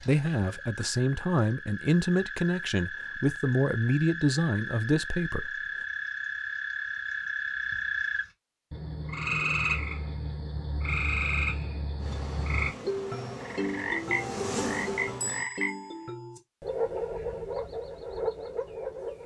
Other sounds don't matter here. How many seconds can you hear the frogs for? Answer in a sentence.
You can hear the frogs for 19 seconds altogether.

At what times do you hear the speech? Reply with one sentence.
The speech can be heard from 0.0 to 5.6 s.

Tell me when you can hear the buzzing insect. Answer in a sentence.
You can hear the buzzing insect from 11.9 to 15.5 s.